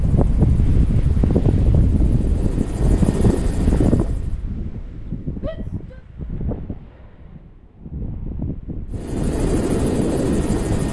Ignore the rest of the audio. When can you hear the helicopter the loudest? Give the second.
10 s.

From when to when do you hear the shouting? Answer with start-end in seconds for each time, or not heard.
5.4-6.0.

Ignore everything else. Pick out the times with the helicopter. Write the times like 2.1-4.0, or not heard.
0.0-4.5, 8.9-10.8.